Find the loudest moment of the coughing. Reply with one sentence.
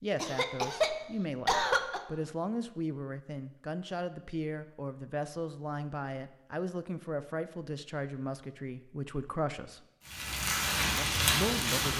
The loudest moment of the coughing is at 2 seconds.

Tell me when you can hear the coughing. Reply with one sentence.
The coughing can be heard from 0.1 to 2.0 s.